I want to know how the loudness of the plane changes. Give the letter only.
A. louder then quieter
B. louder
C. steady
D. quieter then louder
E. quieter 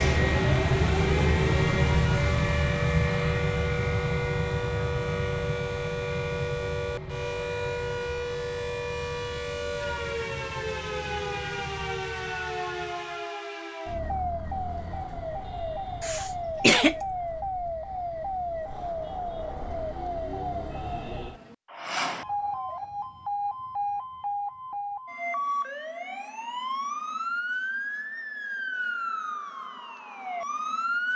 E.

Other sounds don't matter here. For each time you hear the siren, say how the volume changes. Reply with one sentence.
The siren can be heard from 0.0 to 31.1 s, at a steady volume.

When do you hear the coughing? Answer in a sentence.
The coughing can be heard from 16.0 to 16.9 s.